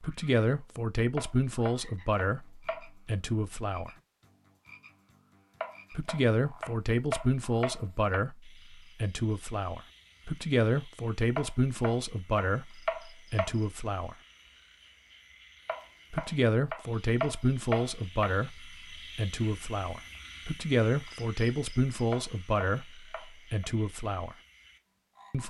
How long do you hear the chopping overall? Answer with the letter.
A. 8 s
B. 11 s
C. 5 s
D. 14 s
B.